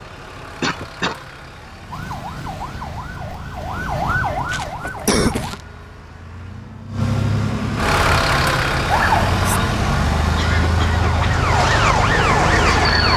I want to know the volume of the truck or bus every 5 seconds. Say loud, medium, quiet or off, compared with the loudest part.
quiet, loud, loud.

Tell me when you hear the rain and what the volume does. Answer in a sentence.
You can't hear the rain here.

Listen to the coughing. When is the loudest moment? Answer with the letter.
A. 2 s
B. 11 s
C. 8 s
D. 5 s
D.